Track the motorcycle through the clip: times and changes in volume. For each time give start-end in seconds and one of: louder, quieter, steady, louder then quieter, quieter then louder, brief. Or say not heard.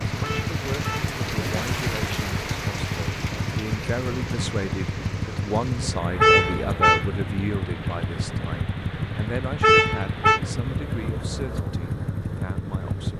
0.0-13.1 steady.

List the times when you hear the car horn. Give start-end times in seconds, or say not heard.
0.2-1.1, 6.2-7.0, 9.6-10.4.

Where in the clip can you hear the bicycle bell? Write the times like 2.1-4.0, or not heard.
not heard.